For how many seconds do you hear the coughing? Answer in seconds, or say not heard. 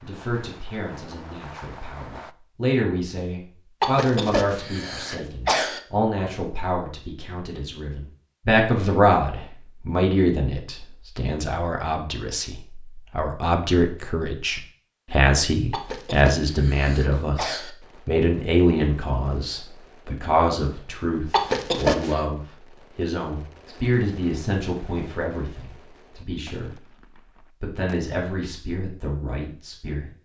5 s.